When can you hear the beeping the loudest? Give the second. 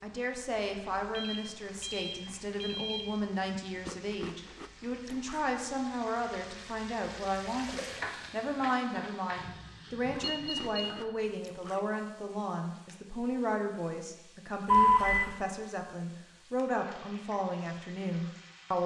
15 s.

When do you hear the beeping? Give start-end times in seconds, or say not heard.
1.0-3.1, 10.2-10.9, 14.7-15.3.